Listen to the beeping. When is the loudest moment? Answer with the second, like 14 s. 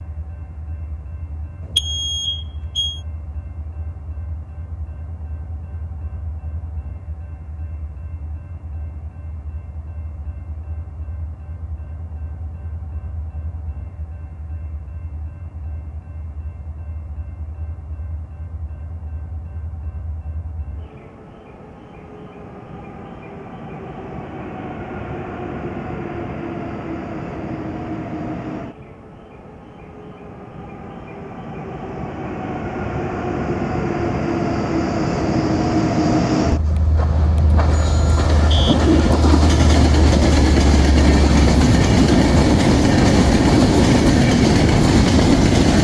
2 s.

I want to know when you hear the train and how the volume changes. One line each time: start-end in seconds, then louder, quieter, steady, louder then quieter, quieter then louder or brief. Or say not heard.
0.0-45.7 louder.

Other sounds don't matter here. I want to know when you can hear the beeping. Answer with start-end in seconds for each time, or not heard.
1.6-3.0, 36.8-38.8.